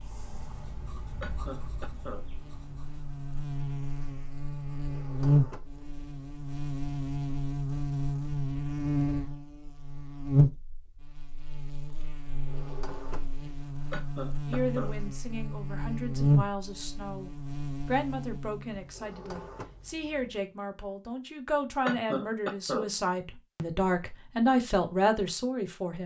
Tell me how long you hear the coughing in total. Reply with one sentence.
You can hear the coughing for 3 seconds altogether.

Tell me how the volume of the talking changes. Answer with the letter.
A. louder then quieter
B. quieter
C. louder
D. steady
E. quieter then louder
C.